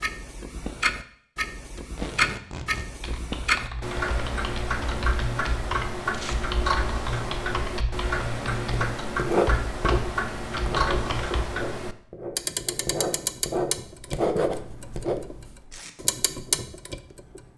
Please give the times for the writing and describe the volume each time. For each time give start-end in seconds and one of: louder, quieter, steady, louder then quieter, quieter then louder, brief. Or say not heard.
8.7-15.6 quieter then louder.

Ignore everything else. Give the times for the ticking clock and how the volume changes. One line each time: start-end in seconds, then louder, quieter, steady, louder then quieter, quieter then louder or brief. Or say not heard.
0.0-17.4 quieter.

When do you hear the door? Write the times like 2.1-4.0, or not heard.
not heard.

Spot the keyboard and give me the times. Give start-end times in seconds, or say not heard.
3.0-11.4.